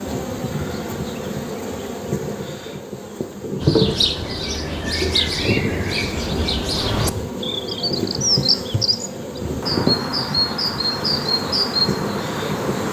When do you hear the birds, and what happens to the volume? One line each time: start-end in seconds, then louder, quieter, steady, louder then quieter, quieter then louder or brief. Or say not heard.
3.6-12.8 steady.